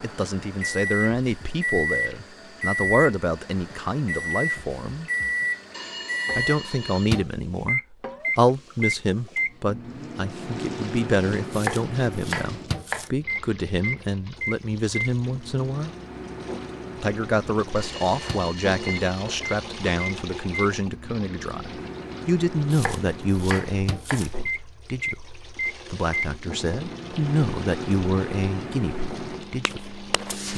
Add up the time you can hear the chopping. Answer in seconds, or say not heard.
3 s.